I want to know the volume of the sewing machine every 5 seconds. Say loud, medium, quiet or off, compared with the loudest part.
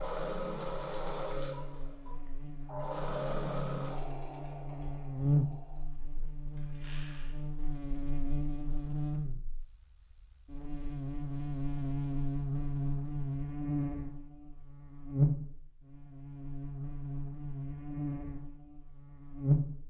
loud, quiet, off, off.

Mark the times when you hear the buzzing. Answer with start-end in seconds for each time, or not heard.
0.0-19.8.